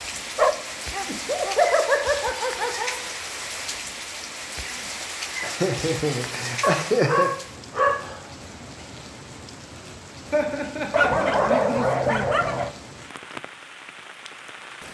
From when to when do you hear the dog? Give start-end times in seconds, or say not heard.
0.3-1.6, 6.6-8.2, 10.9-12.7.